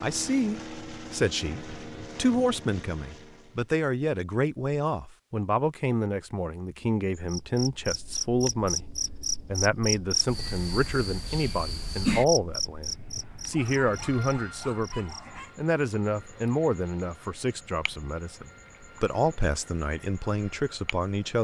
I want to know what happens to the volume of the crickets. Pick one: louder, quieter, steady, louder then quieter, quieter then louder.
quieter.